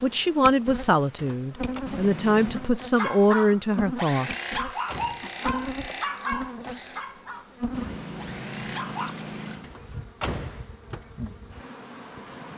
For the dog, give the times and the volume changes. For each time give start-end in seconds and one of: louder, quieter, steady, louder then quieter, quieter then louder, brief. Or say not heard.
3.0-9.2 quieter.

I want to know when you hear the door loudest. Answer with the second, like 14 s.
10 s.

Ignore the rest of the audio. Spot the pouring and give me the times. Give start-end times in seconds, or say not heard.
1.9-2.8, 7.7-9.7.